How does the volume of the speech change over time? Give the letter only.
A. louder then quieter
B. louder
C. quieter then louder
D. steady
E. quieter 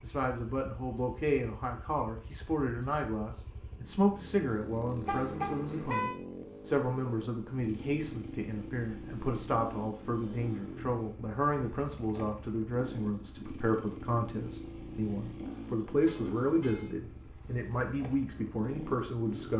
D.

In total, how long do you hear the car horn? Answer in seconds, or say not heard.
2 s.